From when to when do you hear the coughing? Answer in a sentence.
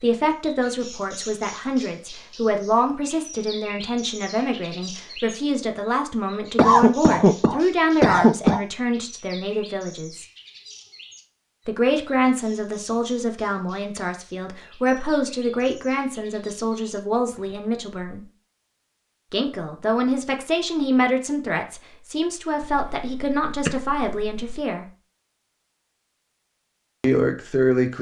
The coughing can be heard from 6.5 to 8.6 s and from 22.6 to 24.6 s.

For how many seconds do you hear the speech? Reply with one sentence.
You can hear the speech for 23 seconds altogether.